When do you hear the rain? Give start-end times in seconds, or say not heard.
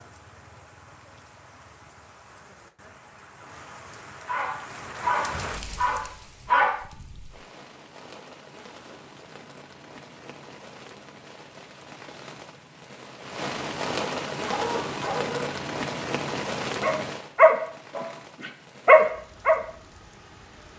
0.0-20.7.